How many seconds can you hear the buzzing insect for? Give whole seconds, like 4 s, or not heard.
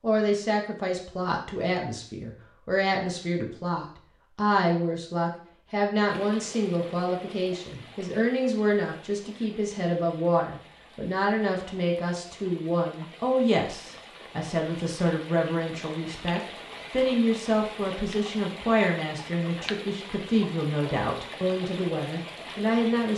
not heard.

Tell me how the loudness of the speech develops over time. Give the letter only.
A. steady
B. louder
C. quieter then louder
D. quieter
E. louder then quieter
A.